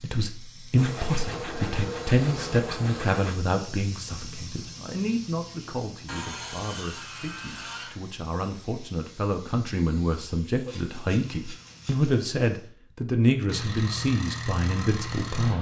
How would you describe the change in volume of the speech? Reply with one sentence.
The loudness of the speech goes down, then up.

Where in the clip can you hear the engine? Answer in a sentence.
You can hear the engine from 13.4 to 15.5 s.